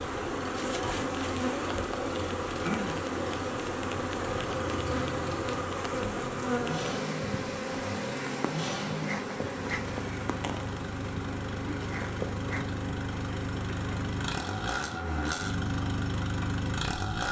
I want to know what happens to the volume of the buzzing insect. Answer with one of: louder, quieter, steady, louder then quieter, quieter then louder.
quieter.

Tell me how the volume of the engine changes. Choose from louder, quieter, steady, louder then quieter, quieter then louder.
louder.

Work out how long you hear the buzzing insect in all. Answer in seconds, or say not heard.
17 s.